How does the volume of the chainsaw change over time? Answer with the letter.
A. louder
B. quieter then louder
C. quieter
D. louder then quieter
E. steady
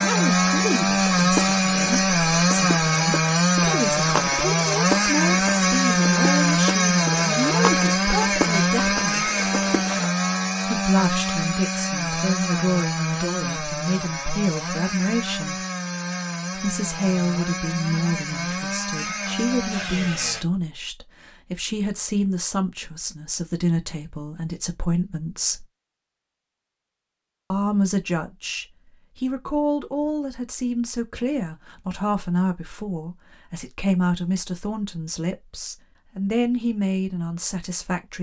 C.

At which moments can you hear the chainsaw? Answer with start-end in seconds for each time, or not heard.
0.0-20.4.